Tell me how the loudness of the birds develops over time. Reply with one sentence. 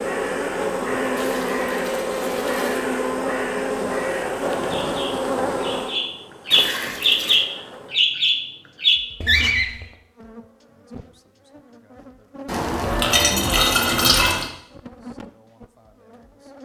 The volume of the birds goes up.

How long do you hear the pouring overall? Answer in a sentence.
The pouring can be heard for 5 seconds in total.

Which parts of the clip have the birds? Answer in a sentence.
The birds can be heard from 0.0 to 9.8 s.